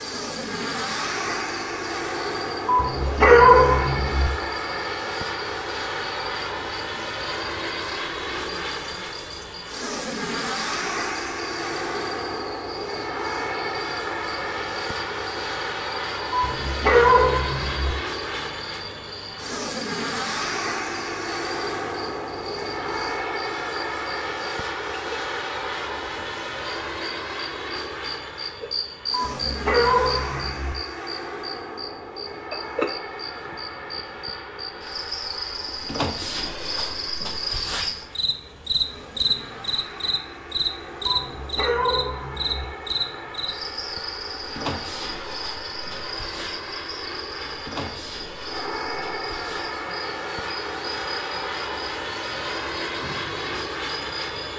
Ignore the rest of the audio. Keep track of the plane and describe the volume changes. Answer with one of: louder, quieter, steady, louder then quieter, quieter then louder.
quieter then louder.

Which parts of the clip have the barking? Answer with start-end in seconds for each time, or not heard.
2.6-4.3, 16.3-17.9, 29.1-30.8, 41.0-42.6.